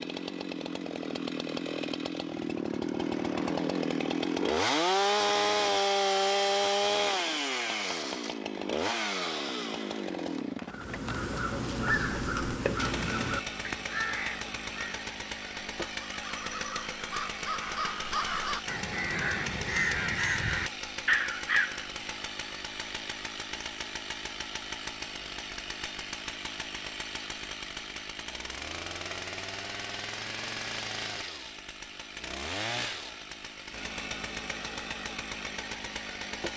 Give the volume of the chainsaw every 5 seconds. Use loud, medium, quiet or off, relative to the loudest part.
loud, loud, medium, medium, medium, medium, medium, medium.